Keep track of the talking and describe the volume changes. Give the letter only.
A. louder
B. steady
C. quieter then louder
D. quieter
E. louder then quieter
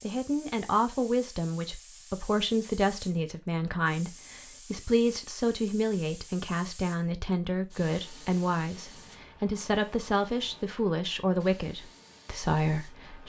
B.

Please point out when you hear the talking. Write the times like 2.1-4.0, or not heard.
0.0-13.2.